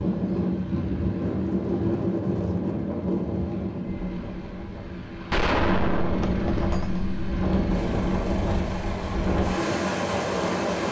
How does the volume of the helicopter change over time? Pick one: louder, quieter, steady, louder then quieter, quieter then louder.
louder.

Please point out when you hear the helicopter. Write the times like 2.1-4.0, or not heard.
0.0-10.8.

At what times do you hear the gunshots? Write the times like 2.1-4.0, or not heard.
5.3-7.0.